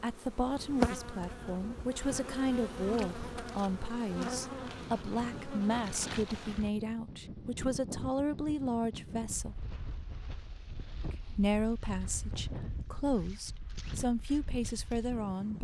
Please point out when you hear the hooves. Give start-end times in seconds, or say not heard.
not heard.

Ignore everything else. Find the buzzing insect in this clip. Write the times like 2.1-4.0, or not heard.
0.0-6.7.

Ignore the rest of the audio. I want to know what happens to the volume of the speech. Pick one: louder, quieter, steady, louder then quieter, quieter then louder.
steady.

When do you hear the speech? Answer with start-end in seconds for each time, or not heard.
0.0-9.7, 11.1-15.5.